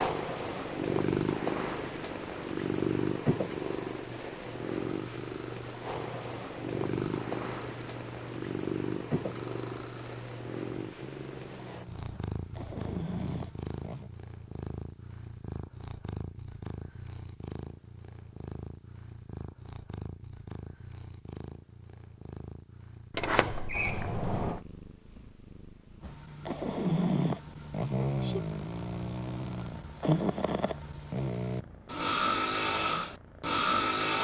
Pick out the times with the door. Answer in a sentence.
The door can be heard from 23.1 to 24.6 s.